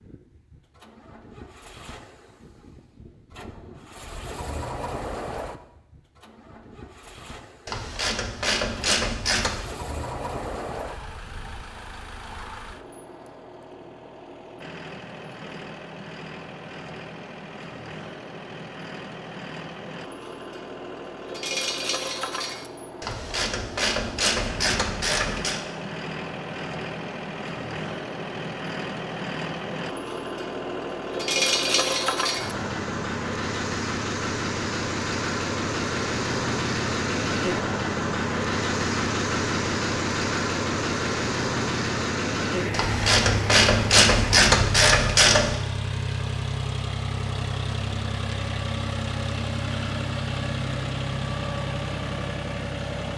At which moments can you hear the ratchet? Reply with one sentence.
You can hear the ratchet from 7.7 to 9.7 s, from 23.0 to 25.6 s and from 42.7 to 45.6 s.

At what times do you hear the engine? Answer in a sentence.
The engine can be heard from 0.0 to 53.1 s.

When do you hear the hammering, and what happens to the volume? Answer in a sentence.
You can't hear the hammering here.